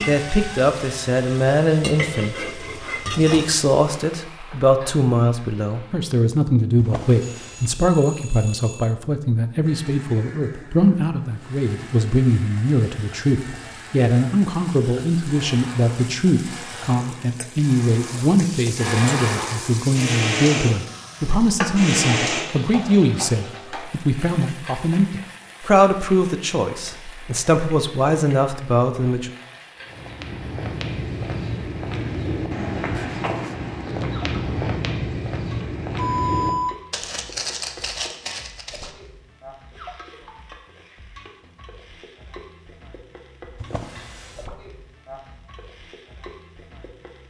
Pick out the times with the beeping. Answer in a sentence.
The beeping can be heard from 7.2 to 8.9 s and from 36.0 to 36.8 s.